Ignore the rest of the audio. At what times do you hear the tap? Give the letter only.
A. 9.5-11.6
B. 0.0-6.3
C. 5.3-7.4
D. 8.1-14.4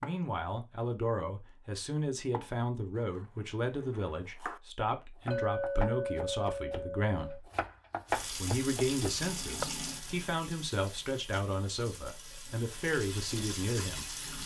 D.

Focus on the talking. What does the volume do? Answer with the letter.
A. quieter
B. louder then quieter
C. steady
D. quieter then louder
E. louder
C.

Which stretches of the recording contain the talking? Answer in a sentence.
The talking can be heard from 0.0 to 7.5 s and from 8.3 to 14.1 s.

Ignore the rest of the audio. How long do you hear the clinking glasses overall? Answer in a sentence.
The clinking glasses can be heard for 2 seconds in total.